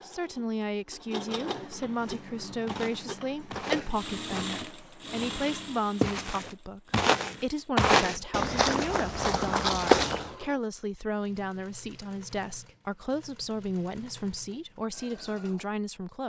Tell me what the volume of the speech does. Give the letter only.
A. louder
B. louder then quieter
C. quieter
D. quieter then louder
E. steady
E.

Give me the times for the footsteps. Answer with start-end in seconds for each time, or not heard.
2.0-10.3.